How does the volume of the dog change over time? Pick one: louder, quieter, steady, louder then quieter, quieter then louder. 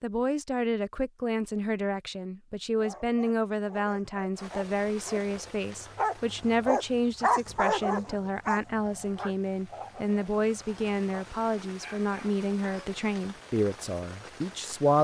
louder then quieter.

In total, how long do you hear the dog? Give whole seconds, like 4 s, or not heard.
10 s.